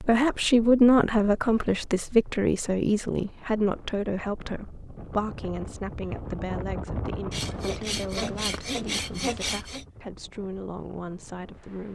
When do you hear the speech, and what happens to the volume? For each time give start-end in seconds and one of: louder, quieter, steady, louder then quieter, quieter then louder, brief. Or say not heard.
0.0-11.9 quieter.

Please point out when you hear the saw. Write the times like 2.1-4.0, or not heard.
7.3-9.8.